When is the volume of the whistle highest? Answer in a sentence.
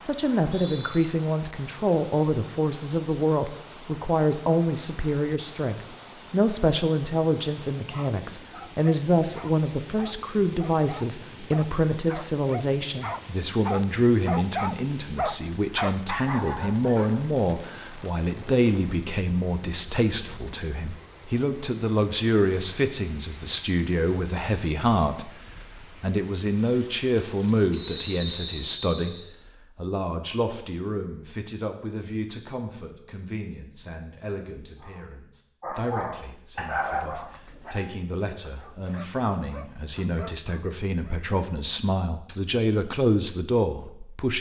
The loudest moment of the whistle is at 28 seconds.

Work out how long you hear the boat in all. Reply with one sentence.
You can't hear the boat here.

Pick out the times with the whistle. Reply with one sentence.
You can hear the whistle from 0.5 to 1.0 s and from 27.7 to 29.2 s.